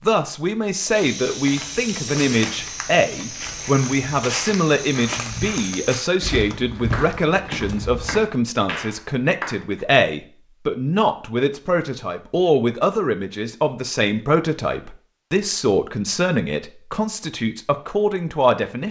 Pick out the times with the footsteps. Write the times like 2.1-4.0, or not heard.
0.8-8.2.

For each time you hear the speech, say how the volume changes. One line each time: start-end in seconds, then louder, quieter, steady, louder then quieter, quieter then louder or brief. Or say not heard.
0.0-18.8 steady.